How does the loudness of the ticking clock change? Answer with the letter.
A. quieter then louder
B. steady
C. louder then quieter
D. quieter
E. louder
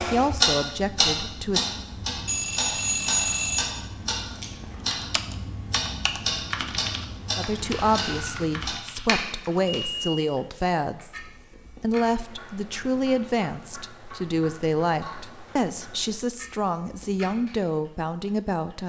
D.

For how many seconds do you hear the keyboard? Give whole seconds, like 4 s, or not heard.
5 s.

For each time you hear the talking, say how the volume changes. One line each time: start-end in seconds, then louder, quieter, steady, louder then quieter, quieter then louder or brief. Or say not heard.
0.1-1.7 brief
7.3-18.8 steady.